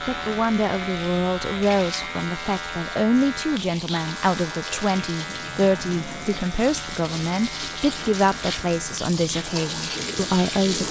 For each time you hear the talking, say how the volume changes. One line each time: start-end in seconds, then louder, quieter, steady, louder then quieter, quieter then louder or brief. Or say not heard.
0.1-10.8 steady.